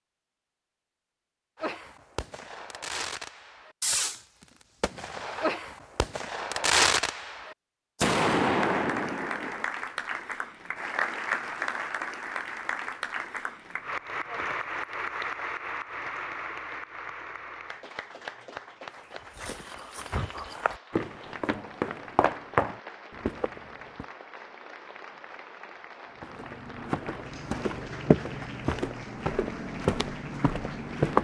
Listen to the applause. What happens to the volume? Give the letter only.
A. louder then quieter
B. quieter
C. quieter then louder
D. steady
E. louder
B.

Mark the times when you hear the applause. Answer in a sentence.
You can hear the applause from 8.6 to 31.2 s.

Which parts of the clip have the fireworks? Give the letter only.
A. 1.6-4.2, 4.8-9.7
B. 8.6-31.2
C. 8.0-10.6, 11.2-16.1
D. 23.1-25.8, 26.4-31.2
A.